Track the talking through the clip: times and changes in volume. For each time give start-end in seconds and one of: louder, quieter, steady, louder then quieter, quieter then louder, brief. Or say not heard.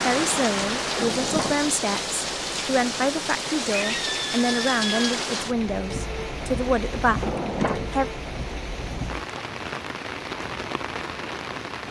0.0-8.1 steady.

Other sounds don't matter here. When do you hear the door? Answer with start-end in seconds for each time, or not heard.
0.9-1.8, 7.2-8.0.